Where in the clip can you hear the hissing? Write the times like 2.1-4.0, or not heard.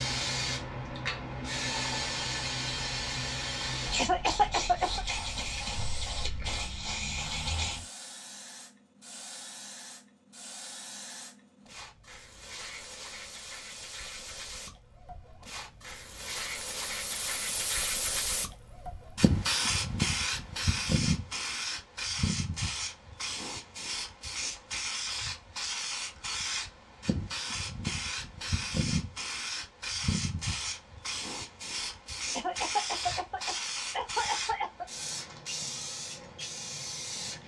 0.0-37.4.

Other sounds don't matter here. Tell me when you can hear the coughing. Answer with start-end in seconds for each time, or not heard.
4.0-5.0, 32.4-34.9.